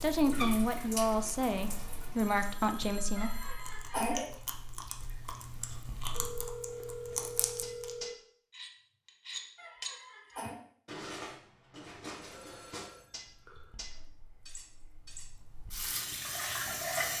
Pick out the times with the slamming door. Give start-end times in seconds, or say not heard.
not heard.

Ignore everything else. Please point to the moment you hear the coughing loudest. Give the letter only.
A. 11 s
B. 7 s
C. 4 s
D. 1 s
C.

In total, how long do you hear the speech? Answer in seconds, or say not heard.
3 s.